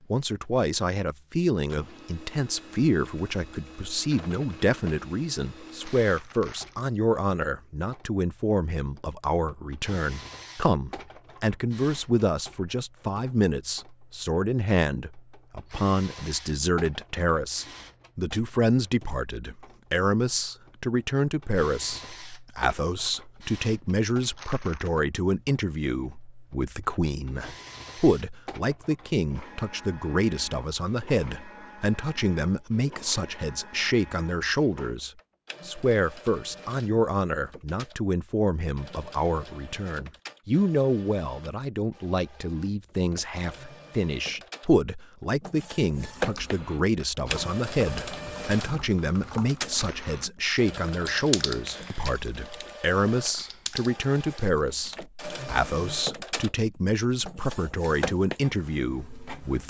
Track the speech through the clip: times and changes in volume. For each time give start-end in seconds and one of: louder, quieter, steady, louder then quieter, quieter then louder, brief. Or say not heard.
0.1-59.6 steady.